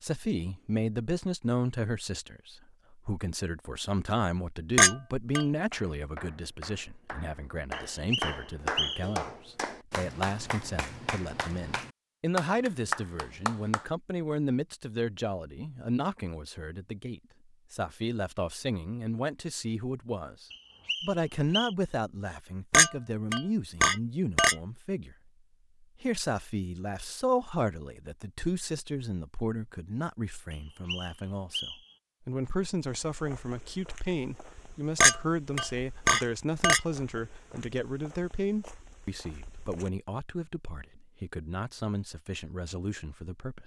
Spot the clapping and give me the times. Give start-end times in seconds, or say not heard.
5.5-13.8.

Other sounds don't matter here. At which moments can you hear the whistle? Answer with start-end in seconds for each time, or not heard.
7.9-9.2, 20.5-21.8, 30.5-31.9.